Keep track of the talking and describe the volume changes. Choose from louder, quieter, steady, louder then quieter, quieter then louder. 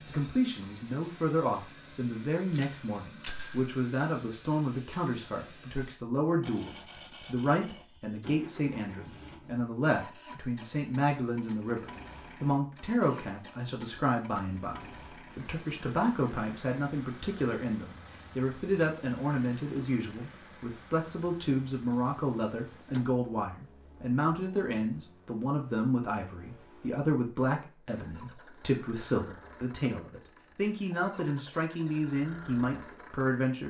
steady.